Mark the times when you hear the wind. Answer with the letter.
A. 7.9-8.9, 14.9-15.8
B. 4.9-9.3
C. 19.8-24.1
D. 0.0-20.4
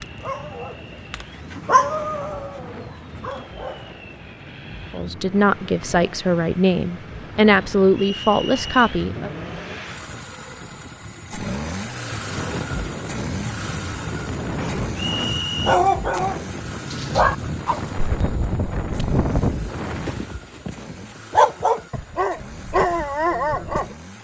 D.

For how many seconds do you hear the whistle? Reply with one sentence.
The whistle can be heard for 2 seconds in total.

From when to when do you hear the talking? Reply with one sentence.
The talking can be heard from 4.9 to 9.3 s.